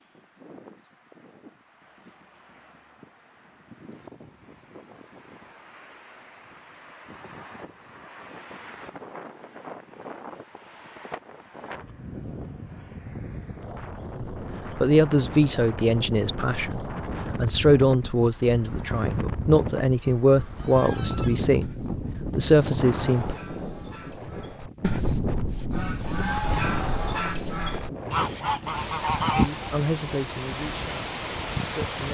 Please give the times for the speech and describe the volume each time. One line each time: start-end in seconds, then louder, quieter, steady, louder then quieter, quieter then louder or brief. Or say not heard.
14.2-23.4 steady
29.2-32.0 brief.